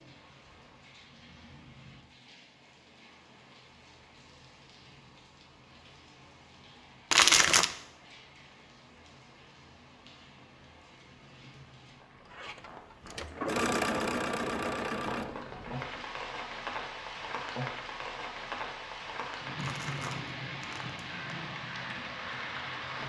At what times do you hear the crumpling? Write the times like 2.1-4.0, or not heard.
7.1-7.8, 19.6-21.4.